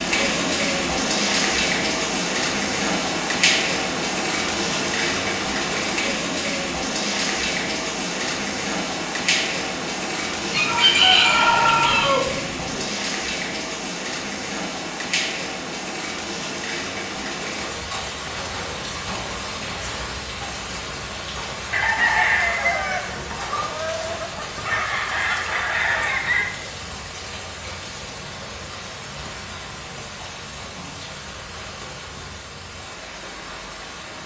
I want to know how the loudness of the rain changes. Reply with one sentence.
The volume of the rain goes down.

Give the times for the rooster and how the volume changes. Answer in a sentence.
You can hear the rooster briefly from 10.4 to 12.8 s; and from 21.7 to 26.5 s, getting quieter then louder.